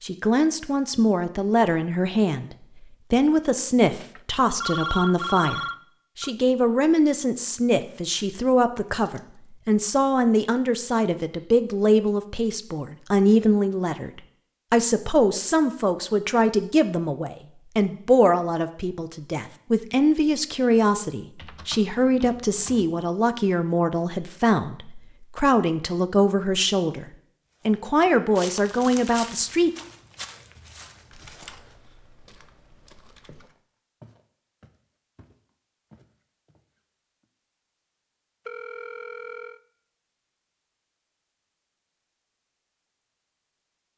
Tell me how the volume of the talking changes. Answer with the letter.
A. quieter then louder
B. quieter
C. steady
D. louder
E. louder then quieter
C.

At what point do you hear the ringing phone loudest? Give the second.
5 s.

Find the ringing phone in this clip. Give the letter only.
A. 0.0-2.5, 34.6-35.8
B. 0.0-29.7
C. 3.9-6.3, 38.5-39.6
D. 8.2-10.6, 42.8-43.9
C.